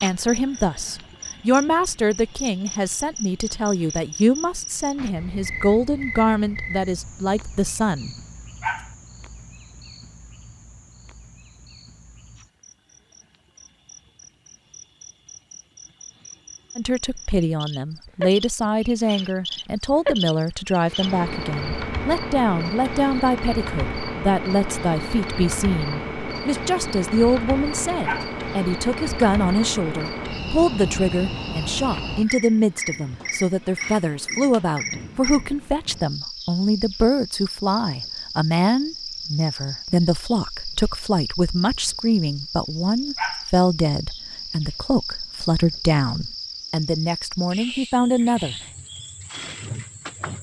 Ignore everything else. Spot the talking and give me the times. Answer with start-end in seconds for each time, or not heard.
0.0-8.2, 16.8-48.5.